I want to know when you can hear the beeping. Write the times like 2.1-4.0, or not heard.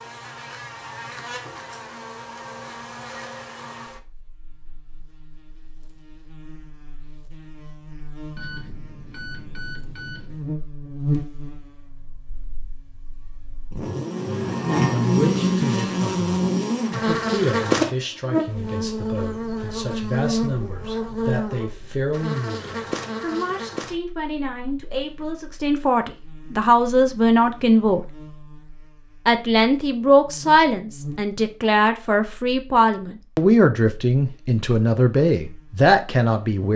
8.3-10.3.